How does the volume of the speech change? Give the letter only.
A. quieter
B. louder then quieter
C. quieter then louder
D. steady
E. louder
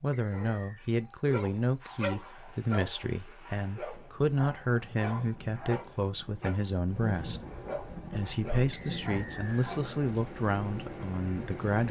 D.